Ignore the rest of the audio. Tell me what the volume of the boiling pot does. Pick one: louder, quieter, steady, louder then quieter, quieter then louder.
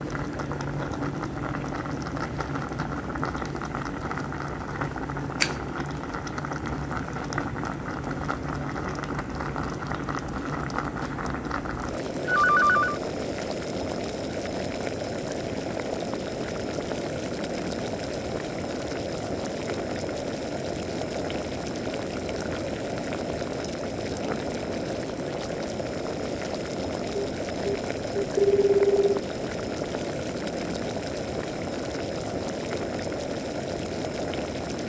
steady.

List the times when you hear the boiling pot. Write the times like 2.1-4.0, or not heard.
0.0-34.8.